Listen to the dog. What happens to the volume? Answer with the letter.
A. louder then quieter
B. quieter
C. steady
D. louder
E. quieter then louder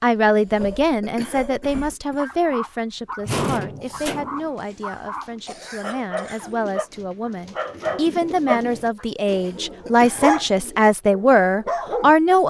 D.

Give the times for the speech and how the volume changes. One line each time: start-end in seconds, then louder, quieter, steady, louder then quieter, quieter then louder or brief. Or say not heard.
0.0-12.4 quieter then louder.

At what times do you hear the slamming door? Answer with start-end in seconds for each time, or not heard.
3.2-4.5.